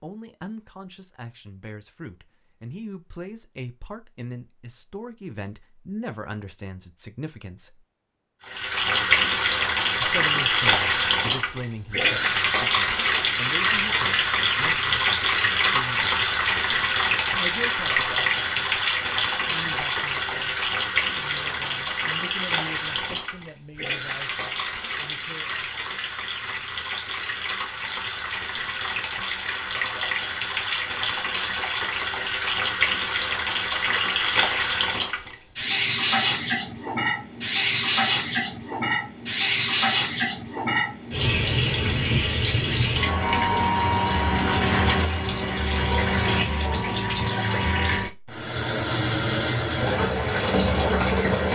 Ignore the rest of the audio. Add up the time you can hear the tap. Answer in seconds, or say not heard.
43 s.